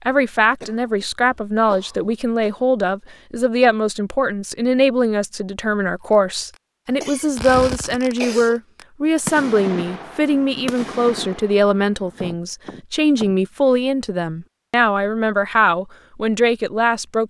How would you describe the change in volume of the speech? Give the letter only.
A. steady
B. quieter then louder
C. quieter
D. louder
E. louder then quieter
A.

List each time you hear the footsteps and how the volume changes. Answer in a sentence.
You can't hear the footsteps here.